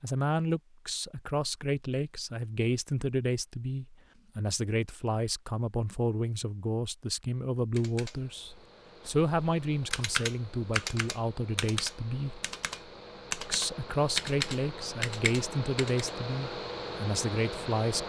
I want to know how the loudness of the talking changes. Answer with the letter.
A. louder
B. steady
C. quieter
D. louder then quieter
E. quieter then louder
B.